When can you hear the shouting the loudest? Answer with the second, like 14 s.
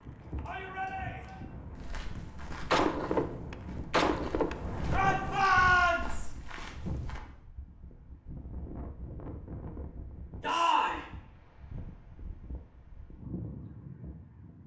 6 s.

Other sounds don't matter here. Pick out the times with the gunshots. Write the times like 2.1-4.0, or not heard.
2.7-5.2.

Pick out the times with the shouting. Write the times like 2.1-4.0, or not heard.
0.5-1.4, 4.9-6.3, 10.4-11.1.